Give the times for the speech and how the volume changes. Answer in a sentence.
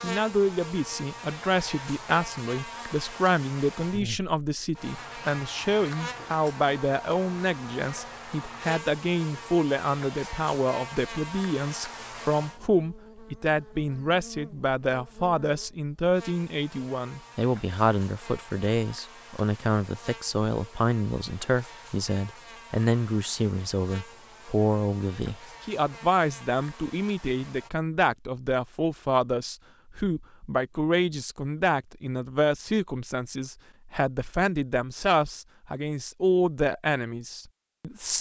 You can hear the speech from 0.0 to 38.1 s, at a steady volume.